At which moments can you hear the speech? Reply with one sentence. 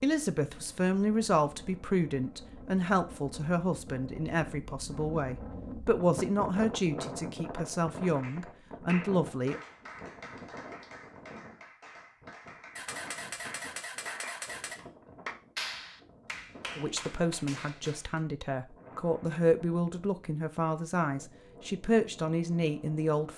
The speech can be heard from 0.0 to 9.6 s and from 16.8 to 23.3 s.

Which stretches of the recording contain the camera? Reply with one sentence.
You can hear the camera from 12.8 to 14.8 s.